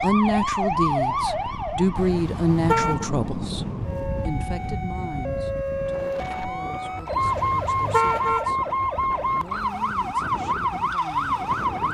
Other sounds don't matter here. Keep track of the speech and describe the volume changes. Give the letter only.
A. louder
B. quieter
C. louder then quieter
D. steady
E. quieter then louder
B.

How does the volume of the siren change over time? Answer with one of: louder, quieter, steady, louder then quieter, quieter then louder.
quieter then louder.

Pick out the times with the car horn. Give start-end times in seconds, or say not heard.
1.9-3.1, 7.2-8.5.